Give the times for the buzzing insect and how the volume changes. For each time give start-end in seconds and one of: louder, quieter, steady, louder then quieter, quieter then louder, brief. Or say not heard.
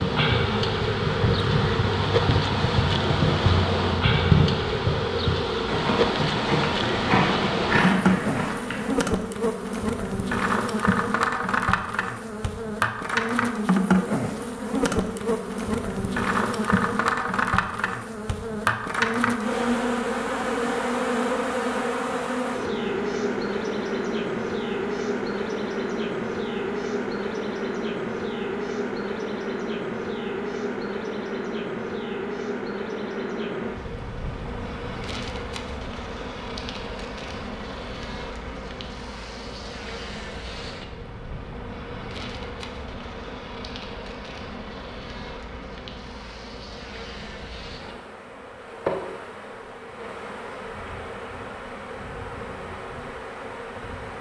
0.0-54.1 quieter.